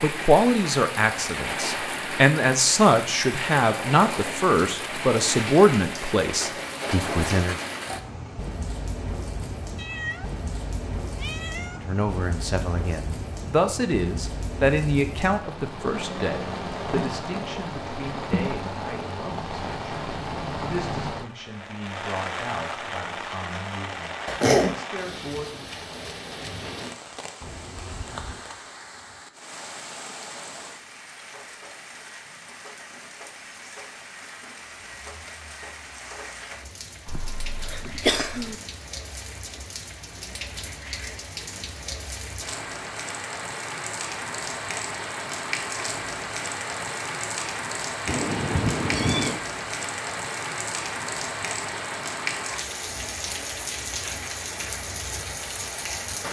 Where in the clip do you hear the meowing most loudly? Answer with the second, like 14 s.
49 s.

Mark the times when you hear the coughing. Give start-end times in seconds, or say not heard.
24.2-24.8, 37.0-38.5.